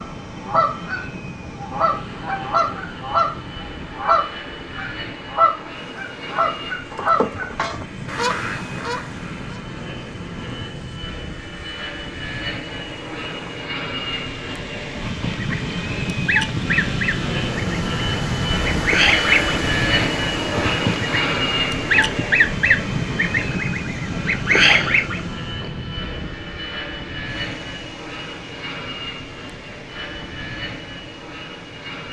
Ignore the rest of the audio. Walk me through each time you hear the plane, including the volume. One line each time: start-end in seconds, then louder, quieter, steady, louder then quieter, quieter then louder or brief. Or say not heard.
0.0-32.0 louder then quieter.